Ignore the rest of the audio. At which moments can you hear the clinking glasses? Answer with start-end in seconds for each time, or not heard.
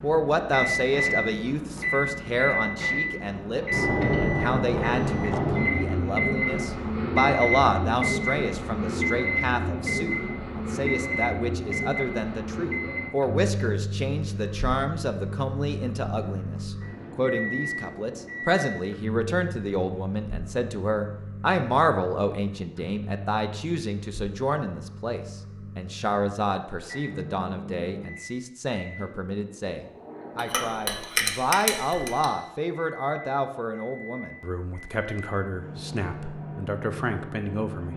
30.4-32.2.